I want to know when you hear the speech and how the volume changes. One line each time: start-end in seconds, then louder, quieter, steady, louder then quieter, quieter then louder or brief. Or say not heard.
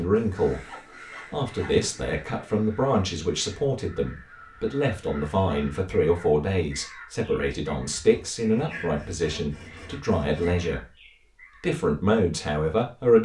0.0-10.9 steady
11.6-13.2 brief.